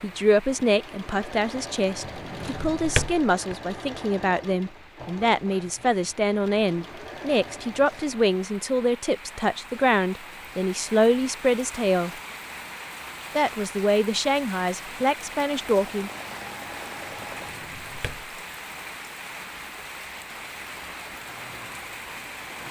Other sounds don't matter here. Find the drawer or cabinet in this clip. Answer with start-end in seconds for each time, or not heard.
2.0-3.5, 17.1-18.4.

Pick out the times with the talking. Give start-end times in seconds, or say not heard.
0.0-12.1, 13.3-16.1.